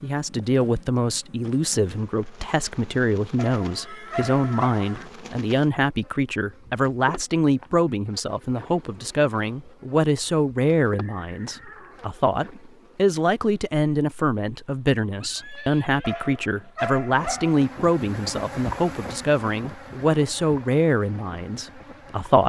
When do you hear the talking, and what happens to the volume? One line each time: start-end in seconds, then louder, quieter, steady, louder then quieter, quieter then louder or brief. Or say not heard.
0.0-22.4 steady.